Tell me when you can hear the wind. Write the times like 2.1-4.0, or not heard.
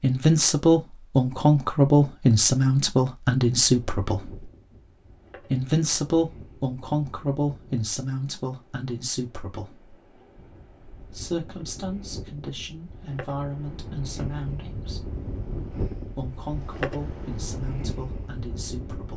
3.6-19.1.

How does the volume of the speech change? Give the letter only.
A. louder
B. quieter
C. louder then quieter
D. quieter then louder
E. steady
B.